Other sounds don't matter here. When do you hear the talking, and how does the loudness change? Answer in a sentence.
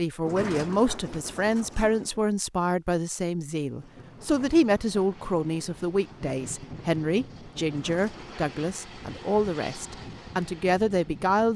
The talking can be heard from 0.0 to 11.5 s, at a steady volume.